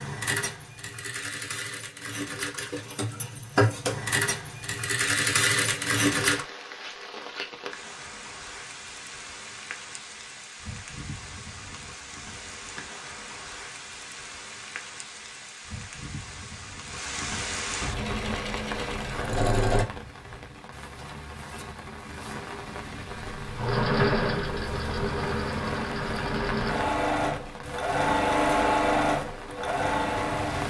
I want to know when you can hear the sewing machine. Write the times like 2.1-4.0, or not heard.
0.0-6.5, 17.9-19.9, 23.3-30.6.